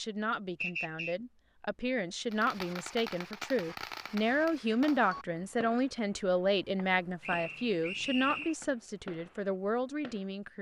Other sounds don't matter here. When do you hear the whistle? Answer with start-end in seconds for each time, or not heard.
0.6-1.1, 7.2-8.6.